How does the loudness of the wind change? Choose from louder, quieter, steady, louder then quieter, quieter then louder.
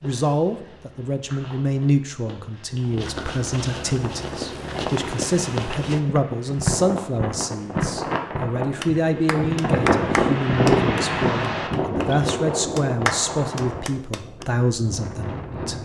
louder then quieter.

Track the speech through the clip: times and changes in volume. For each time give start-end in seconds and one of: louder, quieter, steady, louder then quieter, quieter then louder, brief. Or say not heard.
0.0-15.7 steady.